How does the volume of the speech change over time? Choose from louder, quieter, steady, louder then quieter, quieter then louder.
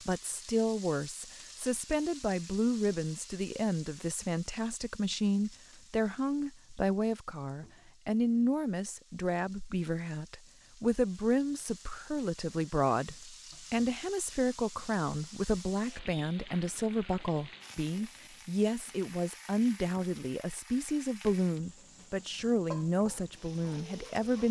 steady.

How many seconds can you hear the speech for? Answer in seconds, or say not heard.
24 s.